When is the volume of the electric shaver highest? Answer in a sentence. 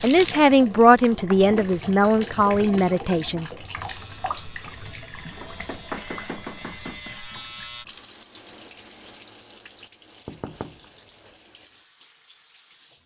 The volume of the electric shaver peaks at 7 seconds.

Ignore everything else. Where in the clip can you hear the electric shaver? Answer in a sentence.
The electric shaver can be heard from 3.9 to 7.8 s.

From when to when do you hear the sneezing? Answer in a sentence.
You can't hear the sneezing here.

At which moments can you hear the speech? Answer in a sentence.
You can hear the speech from 0.0 to 3.5 s.